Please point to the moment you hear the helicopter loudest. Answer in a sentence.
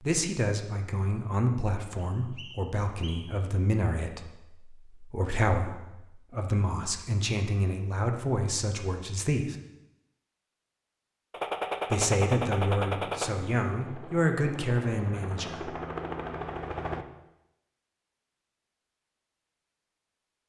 The volume of the helicopter peaks at 16 seconds.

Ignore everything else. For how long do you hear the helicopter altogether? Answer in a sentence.
You can hear the helicopter for 4 seconds altogether.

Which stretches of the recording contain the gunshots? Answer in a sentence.
You can hear the gunshots from 11.3 to 13.3 s.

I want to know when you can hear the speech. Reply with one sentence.
You can hear the speech from 0.0 to 9.6 s and from 11.9 to 15.7 s.